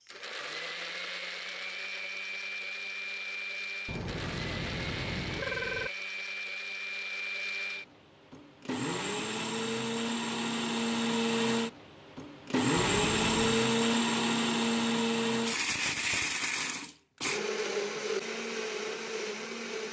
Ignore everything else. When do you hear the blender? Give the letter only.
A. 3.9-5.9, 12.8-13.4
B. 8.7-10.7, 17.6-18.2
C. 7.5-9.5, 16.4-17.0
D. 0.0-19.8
D.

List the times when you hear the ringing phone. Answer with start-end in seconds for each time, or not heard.
3.9-5.9, 12.8-13.4.